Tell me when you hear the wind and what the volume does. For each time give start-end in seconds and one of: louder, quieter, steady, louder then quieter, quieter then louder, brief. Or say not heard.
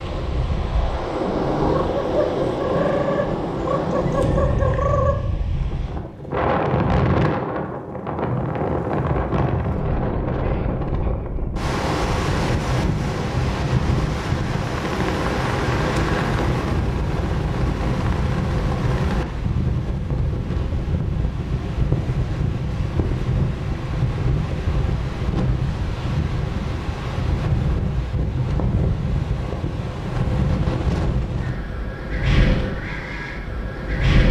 0.0-34.2 steady.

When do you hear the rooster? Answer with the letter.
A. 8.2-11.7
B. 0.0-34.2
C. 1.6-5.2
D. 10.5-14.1
C.